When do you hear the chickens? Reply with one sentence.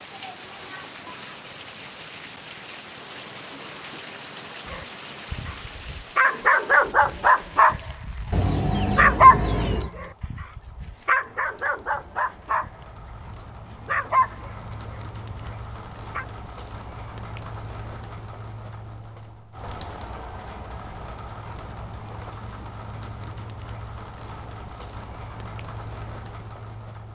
You can hear the chickens from 8.3 to 9.9 s.